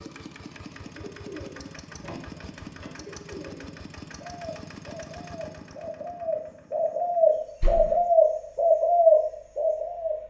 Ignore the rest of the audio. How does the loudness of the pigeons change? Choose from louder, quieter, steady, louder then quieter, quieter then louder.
louder.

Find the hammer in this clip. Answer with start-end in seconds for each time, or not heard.
not heard.